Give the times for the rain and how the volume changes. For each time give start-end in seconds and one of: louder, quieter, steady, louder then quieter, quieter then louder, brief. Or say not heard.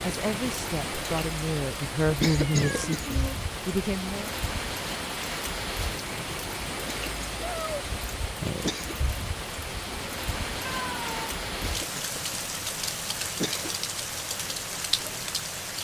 0.0-15.7 steady.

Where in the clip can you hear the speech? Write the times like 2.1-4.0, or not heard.
0.0-4.3.